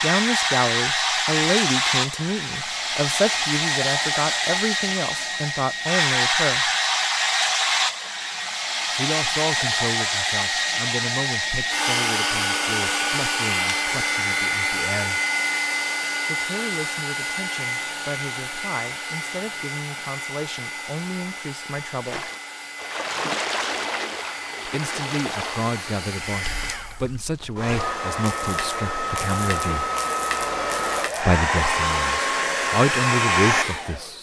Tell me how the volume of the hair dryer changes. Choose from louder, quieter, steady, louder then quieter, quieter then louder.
quieter then louder.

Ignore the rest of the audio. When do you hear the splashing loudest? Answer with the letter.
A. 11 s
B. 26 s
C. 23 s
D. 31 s
C.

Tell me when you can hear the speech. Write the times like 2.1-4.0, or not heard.
0.0-6.7, 8.9-15.2, 16.2-22.3, 24.6-29.9, 31.2-34.1.